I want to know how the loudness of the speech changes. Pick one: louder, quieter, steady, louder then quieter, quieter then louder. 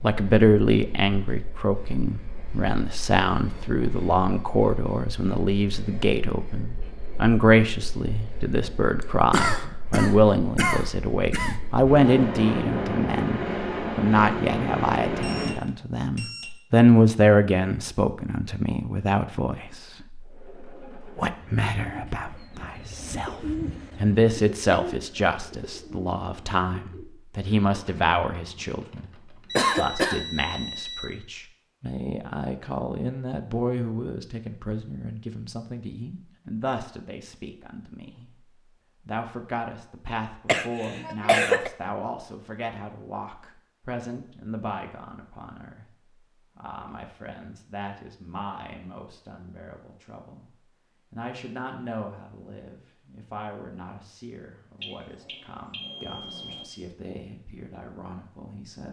quieter.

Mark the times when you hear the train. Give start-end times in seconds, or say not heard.
0.0-15.6.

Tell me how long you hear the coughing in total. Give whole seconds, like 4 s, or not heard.
4 s.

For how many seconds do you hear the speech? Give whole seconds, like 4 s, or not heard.
57 s.